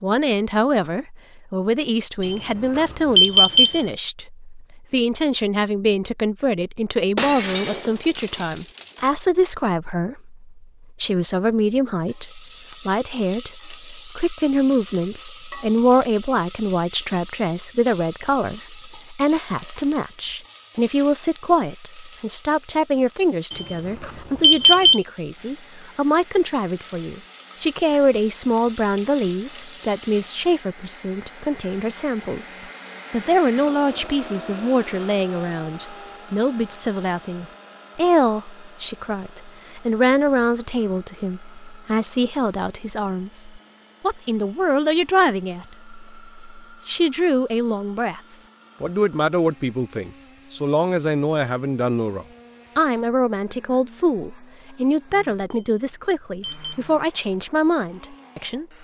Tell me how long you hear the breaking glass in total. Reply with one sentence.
You can hear the breaking glass for 2 seconds altogether.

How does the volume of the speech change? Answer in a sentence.
The loudness of the speech stays about the same.